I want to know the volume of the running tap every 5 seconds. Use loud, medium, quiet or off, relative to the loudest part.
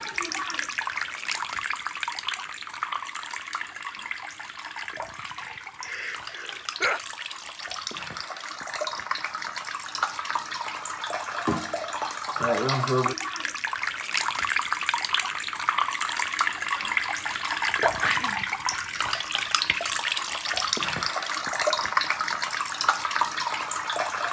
medium, medium, loud, loud, loud.